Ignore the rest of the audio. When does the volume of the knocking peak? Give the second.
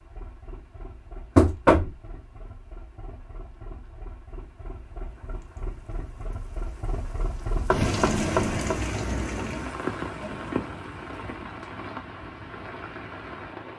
2 s.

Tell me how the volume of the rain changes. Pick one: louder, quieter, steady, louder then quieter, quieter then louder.
louder then quieter.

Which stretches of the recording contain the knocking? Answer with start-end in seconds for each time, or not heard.
1.4-2.0, 7.7-8.8.